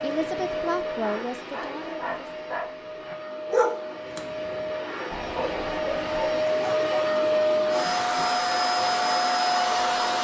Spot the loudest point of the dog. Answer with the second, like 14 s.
4 s.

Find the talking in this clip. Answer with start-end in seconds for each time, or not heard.
0.0-2.5.